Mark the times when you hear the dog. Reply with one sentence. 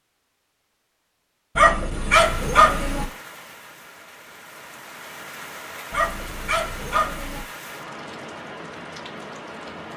The dog can be heard from 1.6 to 3.0 s and from 5.9 to 7.5 s.